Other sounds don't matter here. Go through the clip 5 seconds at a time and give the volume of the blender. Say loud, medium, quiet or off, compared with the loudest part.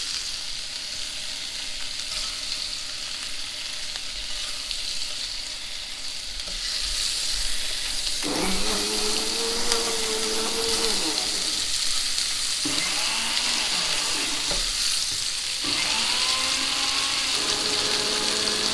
off, loud, loud, loud.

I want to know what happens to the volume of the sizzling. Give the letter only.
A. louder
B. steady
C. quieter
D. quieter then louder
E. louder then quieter
A.